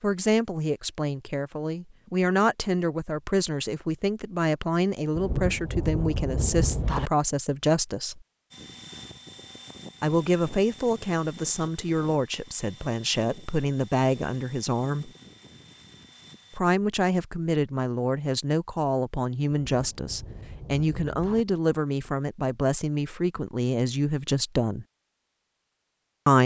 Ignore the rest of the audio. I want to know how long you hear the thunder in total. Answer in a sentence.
You can hear the thunder for 4 seconds altogether.